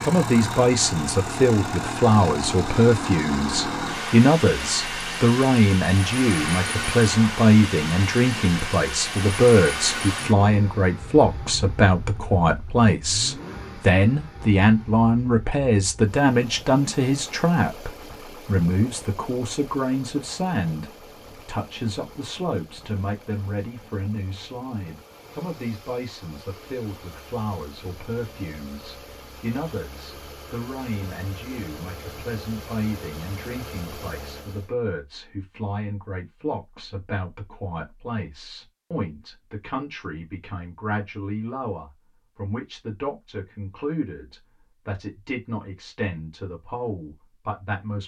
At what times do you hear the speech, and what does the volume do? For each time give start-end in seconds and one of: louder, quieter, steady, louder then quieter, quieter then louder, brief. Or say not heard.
0.0-48.0 quieter.